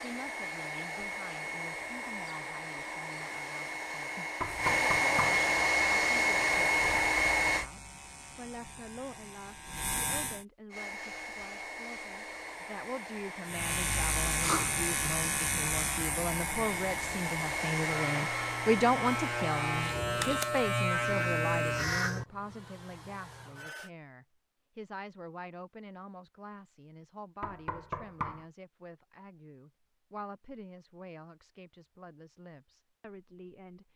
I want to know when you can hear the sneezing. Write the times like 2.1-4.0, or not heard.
14.2-14.7.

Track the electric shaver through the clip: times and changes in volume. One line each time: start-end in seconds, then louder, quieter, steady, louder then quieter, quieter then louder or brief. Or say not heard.
4.4-10.4 louder
13.4-22.2 quieter then louder.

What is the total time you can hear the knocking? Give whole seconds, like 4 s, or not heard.
2 s.